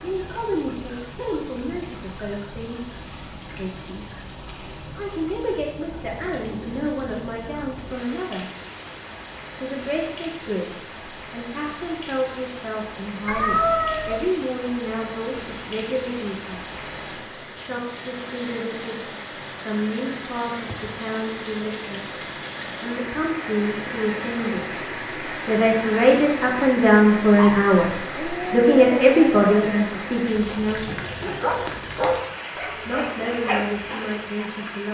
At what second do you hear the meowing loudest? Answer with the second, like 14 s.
14 s.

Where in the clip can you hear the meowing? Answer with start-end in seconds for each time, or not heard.
13.2-14.3, 20.6-21.0.